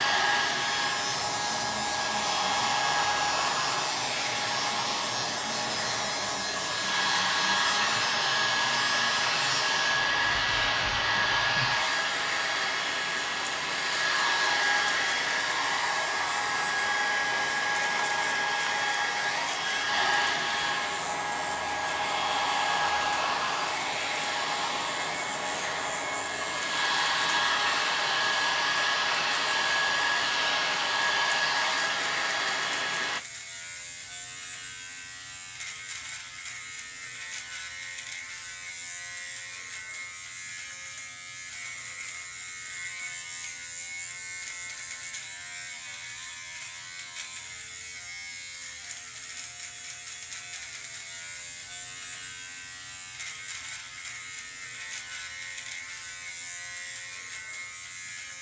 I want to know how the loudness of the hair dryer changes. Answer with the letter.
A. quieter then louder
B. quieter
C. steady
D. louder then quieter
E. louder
C.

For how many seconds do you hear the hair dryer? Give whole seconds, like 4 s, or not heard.
33 s.